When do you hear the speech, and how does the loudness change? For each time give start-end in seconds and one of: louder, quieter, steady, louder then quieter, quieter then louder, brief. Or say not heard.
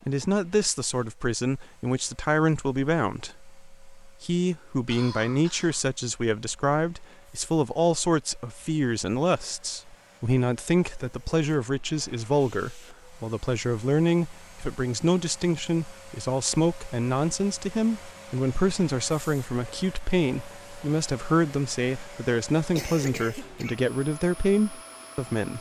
0.1-25.5 steady.